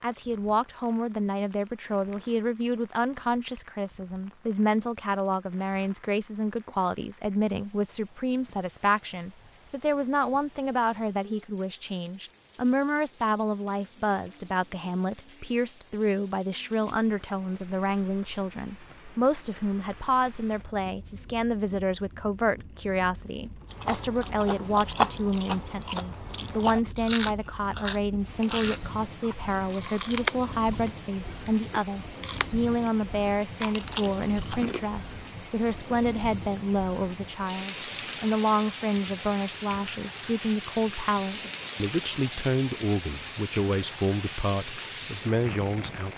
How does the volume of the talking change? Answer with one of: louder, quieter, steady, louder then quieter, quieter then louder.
steady.